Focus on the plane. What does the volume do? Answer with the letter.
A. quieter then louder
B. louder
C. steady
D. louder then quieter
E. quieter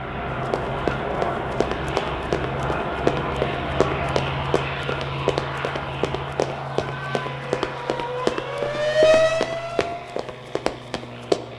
E.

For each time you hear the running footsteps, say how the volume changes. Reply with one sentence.
You can hear the running footsteps from 0.3 to 11.4 s, at a steady volume.